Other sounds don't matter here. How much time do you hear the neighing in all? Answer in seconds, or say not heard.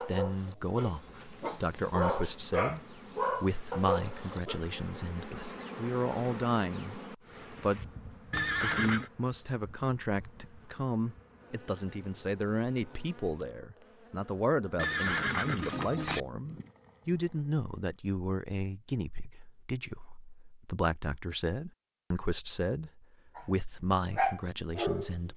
2 s.